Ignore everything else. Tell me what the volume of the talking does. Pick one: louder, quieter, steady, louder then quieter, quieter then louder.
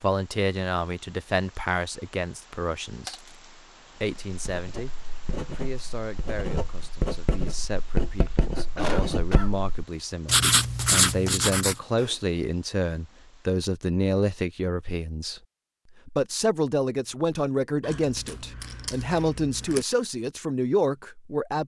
quieter then louder.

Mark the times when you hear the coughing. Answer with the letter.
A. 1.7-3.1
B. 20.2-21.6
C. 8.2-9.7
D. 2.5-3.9
C.